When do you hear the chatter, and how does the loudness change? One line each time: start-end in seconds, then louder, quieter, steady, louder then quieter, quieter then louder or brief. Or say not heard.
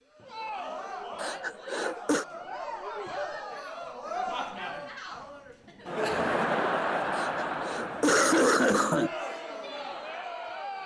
0.1-10.8 louder then quieter.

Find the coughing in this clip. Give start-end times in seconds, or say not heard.
1.1-2.2, 7.1-9.1.